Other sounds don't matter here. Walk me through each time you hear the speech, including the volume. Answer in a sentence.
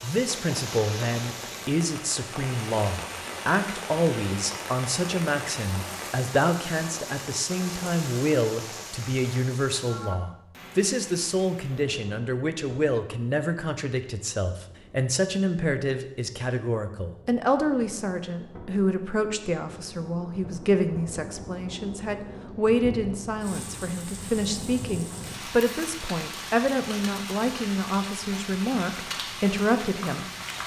You can hear the speech from 0.0 to 30.3 s, at a steady volume.